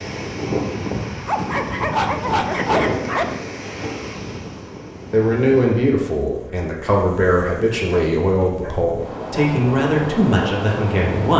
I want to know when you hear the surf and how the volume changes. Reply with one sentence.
The surf can be heard from 0.0 to 11.3 s, getting quieter then louder.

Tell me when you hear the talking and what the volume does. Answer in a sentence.
The talking can be heard from 5.1 to 11.3 s, at a steady volume.